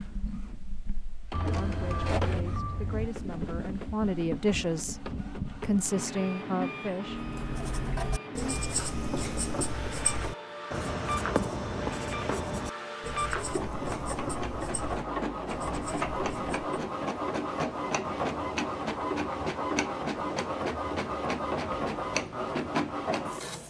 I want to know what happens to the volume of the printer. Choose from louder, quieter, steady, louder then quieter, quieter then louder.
louder.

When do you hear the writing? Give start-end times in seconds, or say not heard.
7.0-16.9.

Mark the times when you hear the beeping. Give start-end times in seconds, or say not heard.
1.3-3.1.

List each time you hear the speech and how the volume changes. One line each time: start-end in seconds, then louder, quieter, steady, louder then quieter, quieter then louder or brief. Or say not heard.
1.6-7.2 louder.